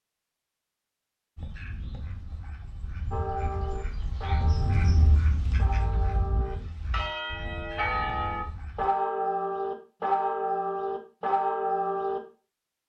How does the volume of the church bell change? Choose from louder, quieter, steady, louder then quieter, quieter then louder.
louder.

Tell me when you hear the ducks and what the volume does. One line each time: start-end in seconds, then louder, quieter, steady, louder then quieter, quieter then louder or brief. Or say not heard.
1.4-8.9 louder then quieter.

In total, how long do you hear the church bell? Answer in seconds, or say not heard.
9 s.